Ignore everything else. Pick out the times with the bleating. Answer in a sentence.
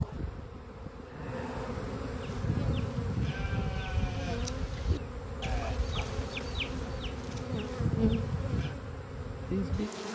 You can hear the bleating from 2.2 to 8.8 s.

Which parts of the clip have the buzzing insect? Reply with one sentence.
You can hear the buzzing insect from 0.0 to 10.0 s.